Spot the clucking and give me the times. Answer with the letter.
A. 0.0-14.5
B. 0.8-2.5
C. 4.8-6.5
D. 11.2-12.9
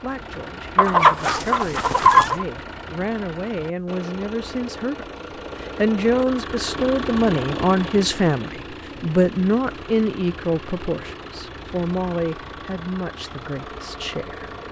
B.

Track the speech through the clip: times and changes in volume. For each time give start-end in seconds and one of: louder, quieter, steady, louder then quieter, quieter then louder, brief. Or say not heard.
0.0-14.5 louder then quieter.